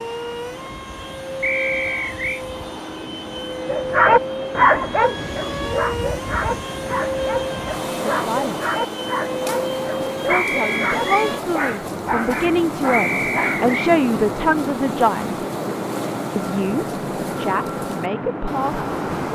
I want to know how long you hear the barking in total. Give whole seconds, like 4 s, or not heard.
10 s.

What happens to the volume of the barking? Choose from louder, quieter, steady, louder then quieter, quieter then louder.
quieter.